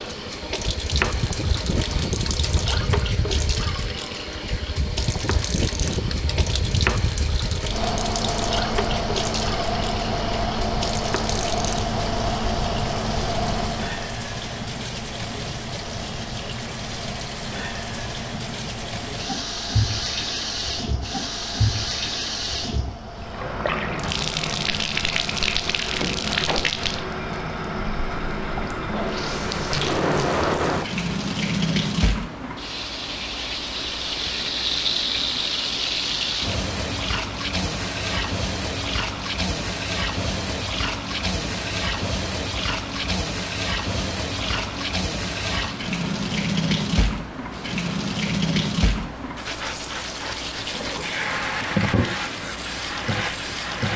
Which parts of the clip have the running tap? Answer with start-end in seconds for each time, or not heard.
0.0-53.9.